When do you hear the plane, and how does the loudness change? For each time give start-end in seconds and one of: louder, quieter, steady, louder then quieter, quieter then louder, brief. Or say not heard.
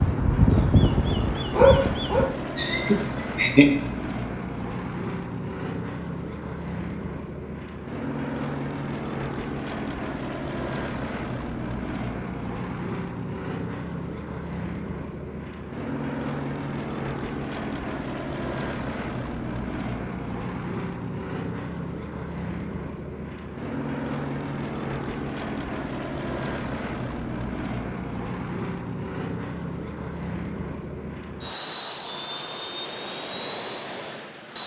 0.0-34.6 steady.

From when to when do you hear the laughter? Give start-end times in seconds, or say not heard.
2.5-3.7.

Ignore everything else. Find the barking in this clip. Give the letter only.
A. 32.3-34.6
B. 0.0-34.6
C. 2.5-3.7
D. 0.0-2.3
D.